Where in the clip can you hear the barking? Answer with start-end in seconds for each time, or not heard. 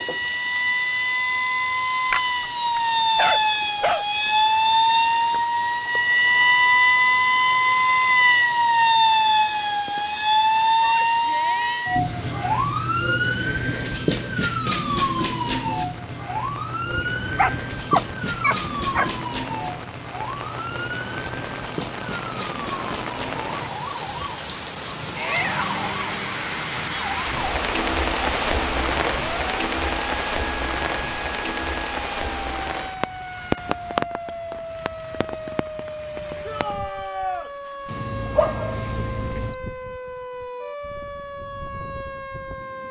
2.1-4.0, 16.9-19.2, 37.9-39.5.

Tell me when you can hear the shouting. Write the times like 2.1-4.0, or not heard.
10.8-11.8, 25.1-25.9, 36.5-37.5.